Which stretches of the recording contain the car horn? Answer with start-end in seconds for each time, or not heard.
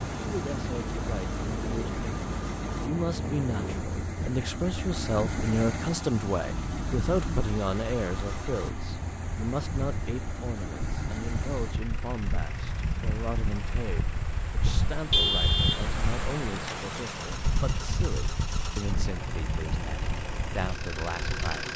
14.7-15.8.